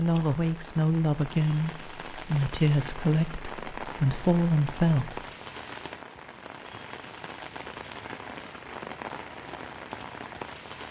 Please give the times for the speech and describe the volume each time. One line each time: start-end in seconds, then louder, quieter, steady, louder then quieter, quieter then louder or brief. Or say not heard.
0.0-5.2 steady.